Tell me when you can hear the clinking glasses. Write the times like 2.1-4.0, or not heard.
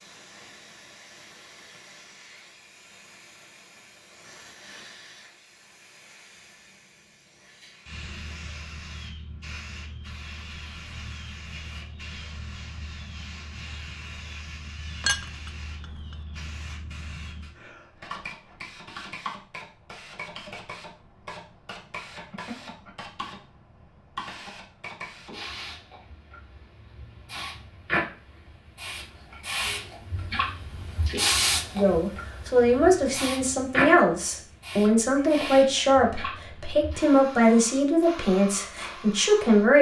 15.0-16.1.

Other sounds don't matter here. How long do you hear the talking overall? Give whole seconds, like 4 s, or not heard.
8 s.